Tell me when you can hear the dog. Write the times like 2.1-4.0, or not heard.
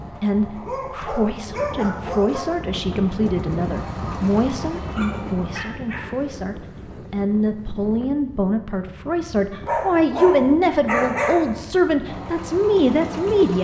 0.5-2.5, 4.8-6.0, 9.5-11.5.